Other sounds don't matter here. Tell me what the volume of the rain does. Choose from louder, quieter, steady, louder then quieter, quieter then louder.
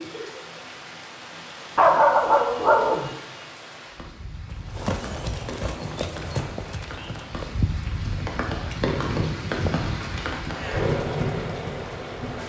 louder.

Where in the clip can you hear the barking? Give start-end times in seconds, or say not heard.
1.8-3.1.